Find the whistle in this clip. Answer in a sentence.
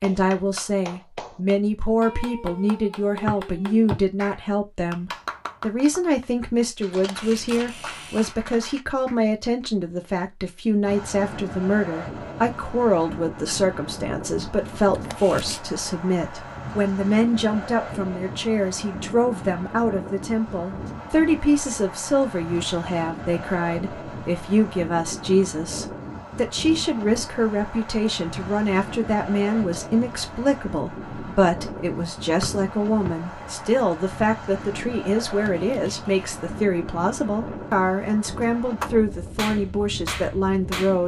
The whistle can be heard from 3.2 to 4.0 s and from 32.4 to 33.1 s.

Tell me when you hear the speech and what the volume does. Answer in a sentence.
The speech can be heard from 0.0 to 41.0 s, at a steady volume.